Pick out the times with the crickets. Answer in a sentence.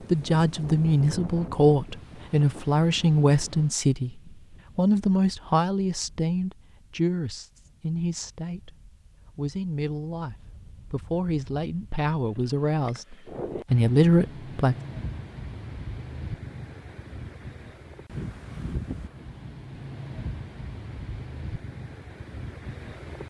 The crickets can't be heard in this clip.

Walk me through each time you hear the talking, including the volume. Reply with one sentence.
You can hear the talking from 0.1 to 14.8 s, getting quieter then louder.